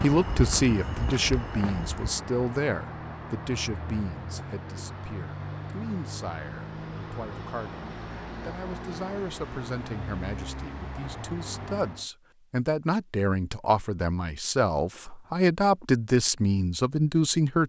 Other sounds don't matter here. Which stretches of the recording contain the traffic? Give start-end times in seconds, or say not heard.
0.0-12.1.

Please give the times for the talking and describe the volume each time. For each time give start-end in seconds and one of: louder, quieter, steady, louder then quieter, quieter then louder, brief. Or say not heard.
0.0-17.6 quieter then louder.